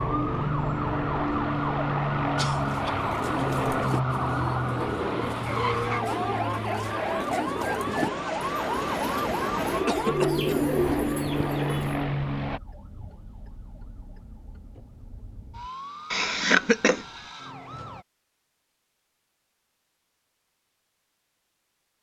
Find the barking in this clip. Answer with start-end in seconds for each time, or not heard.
not heard.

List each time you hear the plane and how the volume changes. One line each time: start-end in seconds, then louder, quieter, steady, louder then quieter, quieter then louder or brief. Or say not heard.
0.0-12.6 quieter then louder.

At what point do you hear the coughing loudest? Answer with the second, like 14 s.
17 s.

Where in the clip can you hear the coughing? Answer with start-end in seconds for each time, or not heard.
2.4-3.0, 9.8-10.6, 16.1-17.1.